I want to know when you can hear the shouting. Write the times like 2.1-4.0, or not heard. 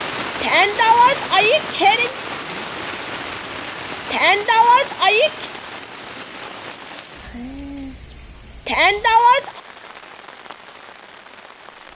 0.4-2.1, 4.1-5.5, 8.7-9.5.